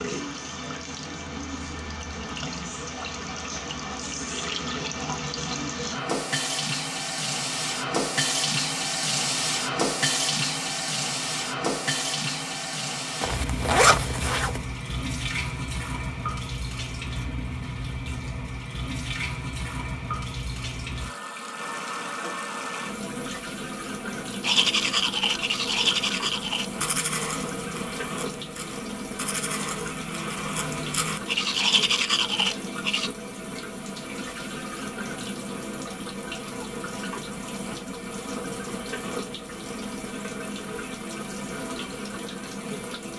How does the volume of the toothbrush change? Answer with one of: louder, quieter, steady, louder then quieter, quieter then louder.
quieter then louder.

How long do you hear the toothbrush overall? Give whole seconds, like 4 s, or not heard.
9 s.